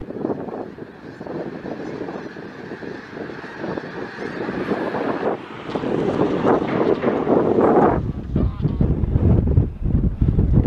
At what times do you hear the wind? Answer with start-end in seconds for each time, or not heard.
0.0-10.6.